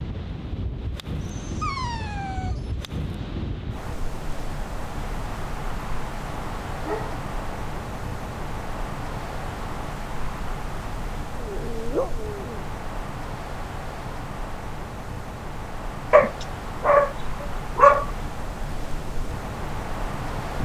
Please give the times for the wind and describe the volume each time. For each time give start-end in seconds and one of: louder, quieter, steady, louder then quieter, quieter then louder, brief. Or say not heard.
0.0-20.6 steady.